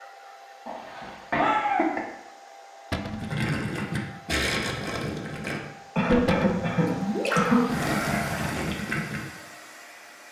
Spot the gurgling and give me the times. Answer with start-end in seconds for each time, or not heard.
3.1-9.2.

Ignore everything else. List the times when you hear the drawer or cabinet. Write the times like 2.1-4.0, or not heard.
2.9-3.4, 6.2-6.8.